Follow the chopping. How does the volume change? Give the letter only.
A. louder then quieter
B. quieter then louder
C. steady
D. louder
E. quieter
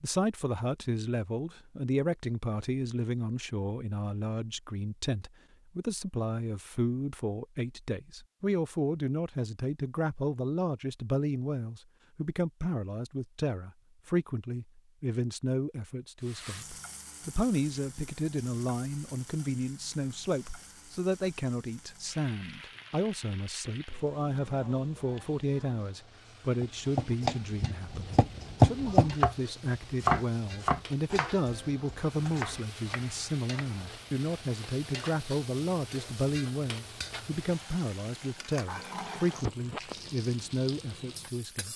A.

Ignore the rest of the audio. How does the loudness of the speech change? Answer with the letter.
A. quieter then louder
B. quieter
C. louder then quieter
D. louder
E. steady
E.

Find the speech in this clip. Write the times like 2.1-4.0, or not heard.
0.0-41.7.